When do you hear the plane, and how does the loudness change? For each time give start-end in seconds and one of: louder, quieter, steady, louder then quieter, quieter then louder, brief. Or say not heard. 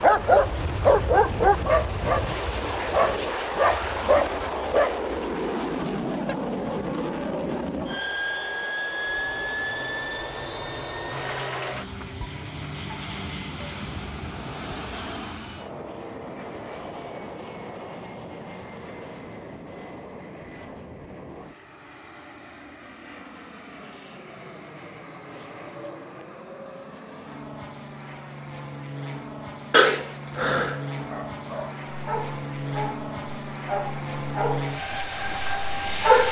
0.1-36.2 quieter then louder.